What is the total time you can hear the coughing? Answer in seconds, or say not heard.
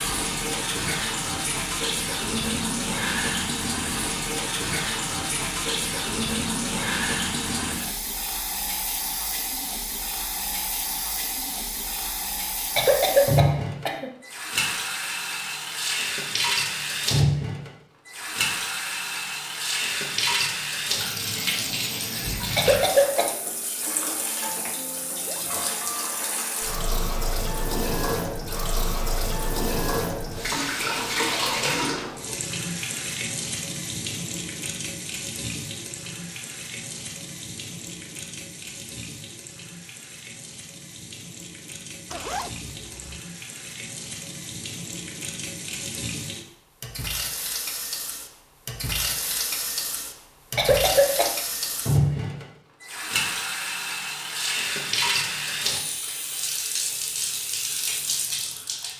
3 s.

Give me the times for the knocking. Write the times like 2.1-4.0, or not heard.
not heard.